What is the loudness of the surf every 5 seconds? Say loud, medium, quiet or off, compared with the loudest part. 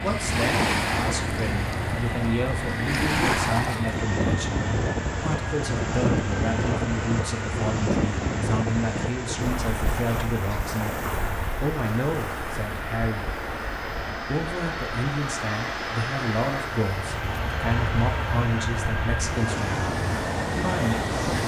loud, loud, medium, medium, loud.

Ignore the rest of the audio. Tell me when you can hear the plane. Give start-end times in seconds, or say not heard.
0.0-21.4.